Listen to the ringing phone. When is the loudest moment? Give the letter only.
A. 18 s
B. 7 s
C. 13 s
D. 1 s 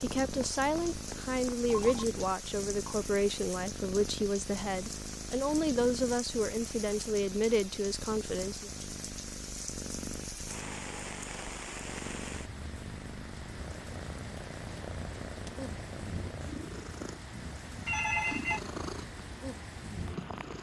A.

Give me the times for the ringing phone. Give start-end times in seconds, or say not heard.
0.1-2.0, 17.9-18.6.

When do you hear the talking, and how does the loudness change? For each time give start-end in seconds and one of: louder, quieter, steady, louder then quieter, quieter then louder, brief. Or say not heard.
0.0-8.7 steady.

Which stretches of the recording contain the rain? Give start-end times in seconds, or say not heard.
0.0-20.5.